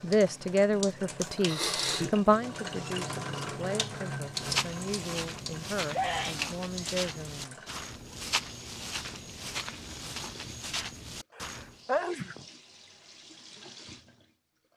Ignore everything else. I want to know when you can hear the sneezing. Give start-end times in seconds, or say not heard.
1.2-2.1, 5.9-6.5, 11.3-12.4.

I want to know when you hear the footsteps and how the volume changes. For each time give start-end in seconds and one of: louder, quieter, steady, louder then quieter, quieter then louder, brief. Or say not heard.
4.3-11.8 steady.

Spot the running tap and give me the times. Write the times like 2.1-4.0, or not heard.
0.0-14.7.